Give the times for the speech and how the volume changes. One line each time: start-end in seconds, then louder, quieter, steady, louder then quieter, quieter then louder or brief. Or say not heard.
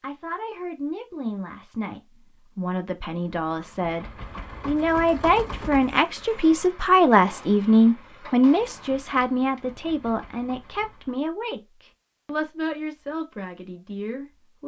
0.0-14.6 louder then quieter.